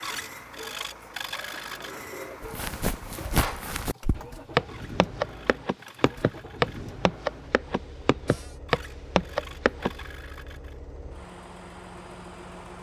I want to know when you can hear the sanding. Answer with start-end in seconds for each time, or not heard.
0.0-1.9, 4.7-7.0, 8.7-10.8.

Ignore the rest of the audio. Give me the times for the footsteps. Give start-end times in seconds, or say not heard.
2.4-9.9.